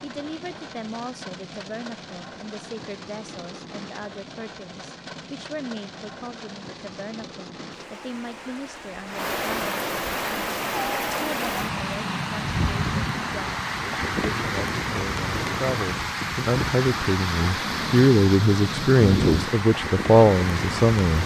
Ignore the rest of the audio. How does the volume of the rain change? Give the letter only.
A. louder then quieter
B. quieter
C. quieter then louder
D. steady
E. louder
E.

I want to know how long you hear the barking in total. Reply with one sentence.
You can't hear the barking here.